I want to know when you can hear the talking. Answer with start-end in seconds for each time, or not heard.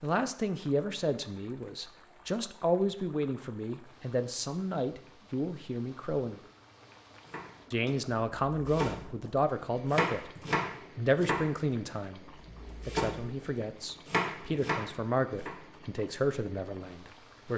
0.0-6.4, 7.7-10.3, 10.9-17.5.